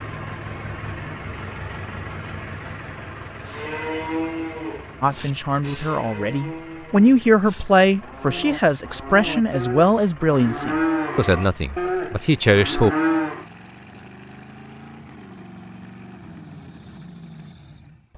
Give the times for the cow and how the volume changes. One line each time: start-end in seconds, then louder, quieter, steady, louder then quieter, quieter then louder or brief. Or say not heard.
3.5-13.4 quieter then louder.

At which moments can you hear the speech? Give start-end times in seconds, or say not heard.
5.0-12.9.